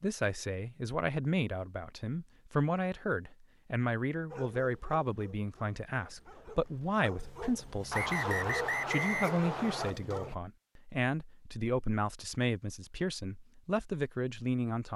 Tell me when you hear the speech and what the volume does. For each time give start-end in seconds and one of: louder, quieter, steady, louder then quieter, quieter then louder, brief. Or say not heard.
0.0-14.9 steady.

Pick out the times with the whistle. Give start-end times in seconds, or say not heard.
7.9-9.9.